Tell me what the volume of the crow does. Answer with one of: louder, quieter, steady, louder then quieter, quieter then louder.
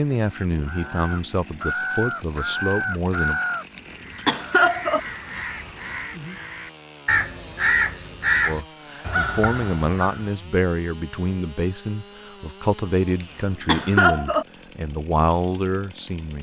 quieter then louder.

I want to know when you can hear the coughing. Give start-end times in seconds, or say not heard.
3.8-5.0, 13.2-14.4.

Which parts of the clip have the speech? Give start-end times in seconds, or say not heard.
0.0-3.4, 8.4-16.3.